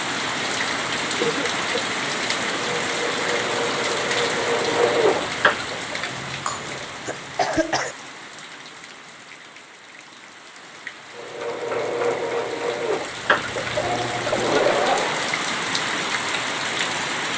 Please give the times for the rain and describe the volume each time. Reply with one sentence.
The rain can be heard from 0.0 to 17.3 s, getting quieter then louder.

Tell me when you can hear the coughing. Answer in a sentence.
You can hear the coughing from 1.1 to 1.8 s, from 6.1 to 8.0 s and from 14.2 to 14.9 s.